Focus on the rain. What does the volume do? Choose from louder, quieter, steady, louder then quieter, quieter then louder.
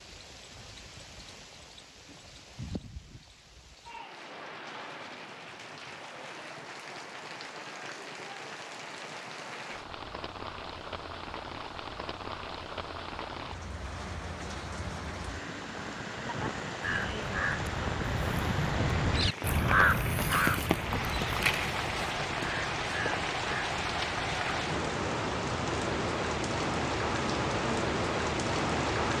louder.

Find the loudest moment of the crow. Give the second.
20 s.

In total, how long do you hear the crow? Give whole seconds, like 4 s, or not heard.
8 s.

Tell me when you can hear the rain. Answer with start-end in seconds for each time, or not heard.
0.0-29.1.